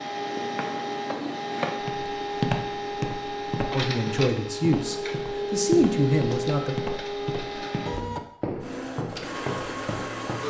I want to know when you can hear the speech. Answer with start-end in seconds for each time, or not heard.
3.7-6.8.